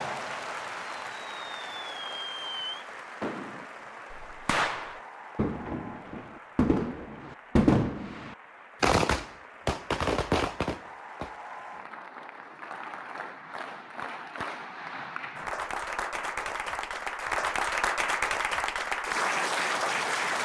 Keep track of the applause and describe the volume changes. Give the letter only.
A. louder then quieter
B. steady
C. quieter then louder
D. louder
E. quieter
C.